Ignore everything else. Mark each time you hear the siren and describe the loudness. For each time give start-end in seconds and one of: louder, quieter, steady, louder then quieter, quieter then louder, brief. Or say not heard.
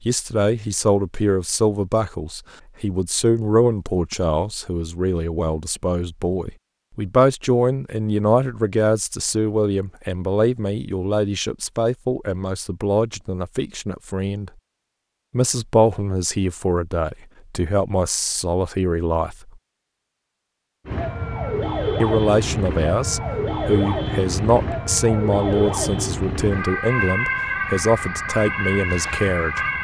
20.9-29.7 steady.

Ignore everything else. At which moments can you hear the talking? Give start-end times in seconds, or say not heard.
0.0-14.5, 15.3-19.5, 22.0-29.6.